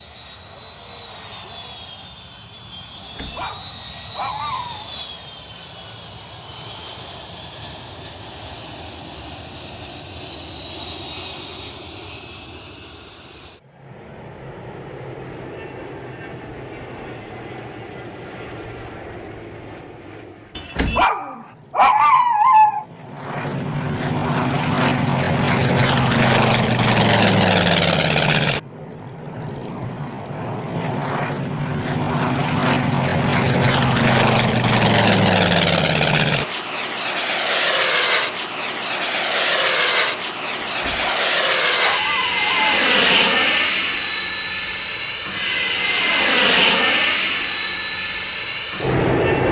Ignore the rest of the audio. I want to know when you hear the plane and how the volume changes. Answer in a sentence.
You can hear the plane from 0.0 to 49.4 s, getting louder.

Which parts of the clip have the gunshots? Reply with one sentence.
The gunshots can't be heard in this clip.